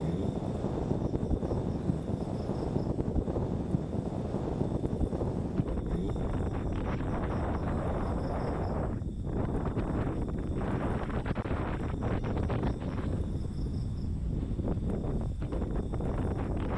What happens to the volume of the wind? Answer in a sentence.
The loudness of the wind stays about the same.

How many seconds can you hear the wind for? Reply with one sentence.
You can hear the wind for 17 seconds altogether.